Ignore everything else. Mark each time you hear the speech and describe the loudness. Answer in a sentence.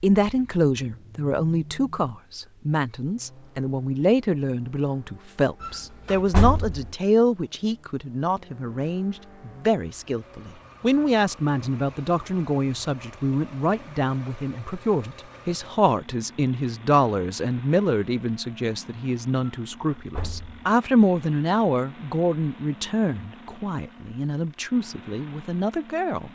You can hear the speech from 0.0 to 26.3 s, at a steady volume.